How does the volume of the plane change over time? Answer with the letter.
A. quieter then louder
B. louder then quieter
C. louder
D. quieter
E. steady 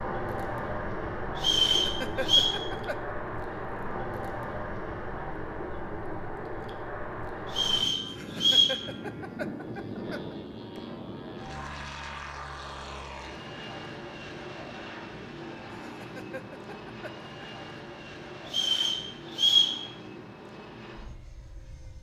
D.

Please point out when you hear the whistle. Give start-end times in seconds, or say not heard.
1.4-2.5, 7.5-8.8, 18.4-19.8.